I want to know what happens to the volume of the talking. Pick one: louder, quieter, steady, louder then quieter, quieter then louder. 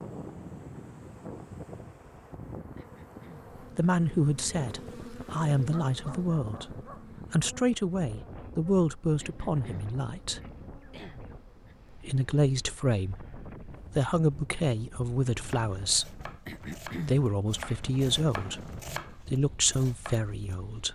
steady.